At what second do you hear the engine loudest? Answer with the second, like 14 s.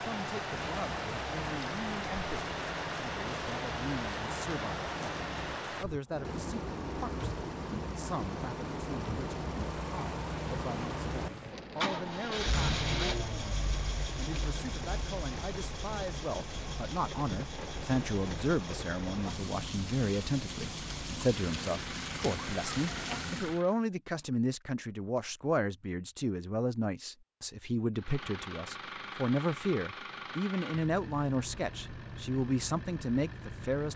13 s.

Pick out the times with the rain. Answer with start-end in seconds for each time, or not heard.
0.0-23.6.